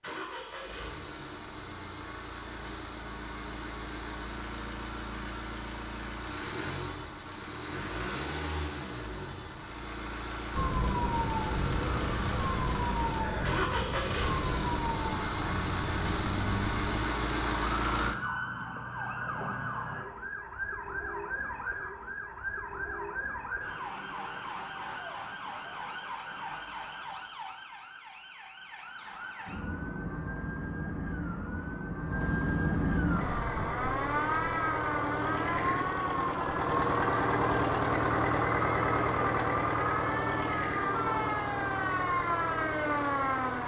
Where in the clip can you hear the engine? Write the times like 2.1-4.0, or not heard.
0.0-18.1, 33.0-43.6.